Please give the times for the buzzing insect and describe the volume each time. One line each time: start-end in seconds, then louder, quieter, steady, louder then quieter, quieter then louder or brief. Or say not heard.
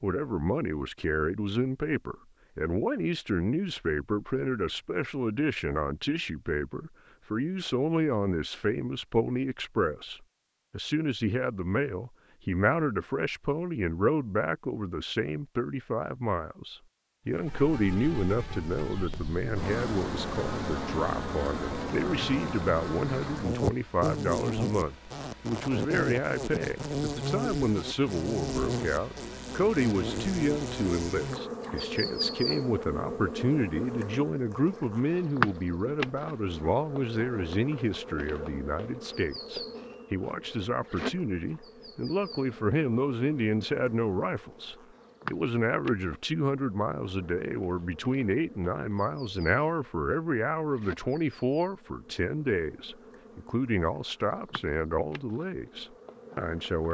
17.3-56.8 quieter.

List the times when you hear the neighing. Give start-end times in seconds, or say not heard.
not heard.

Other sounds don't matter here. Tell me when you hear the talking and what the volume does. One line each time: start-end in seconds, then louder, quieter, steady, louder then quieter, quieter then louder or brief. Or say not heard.
0.0-56.8 steady.